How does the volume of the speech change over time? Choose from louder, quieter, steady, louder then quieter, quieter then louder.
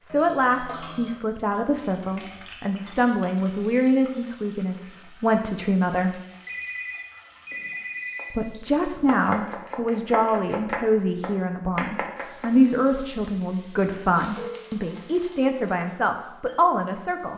steady.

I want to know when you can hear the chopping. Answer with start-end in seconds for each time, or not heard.
7.2-12.5.